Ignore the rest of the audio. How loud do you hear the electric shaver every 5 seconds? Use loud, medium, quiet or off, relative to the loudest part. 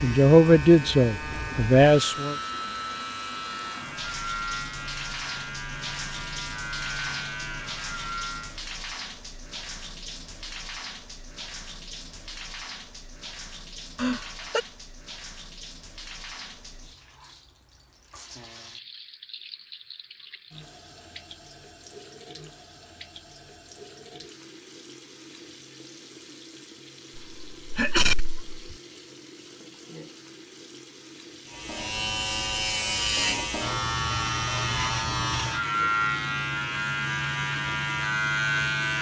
medium, medium, off, off, off, off, loud, loud.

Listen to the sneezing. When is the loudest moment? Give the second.
28 s.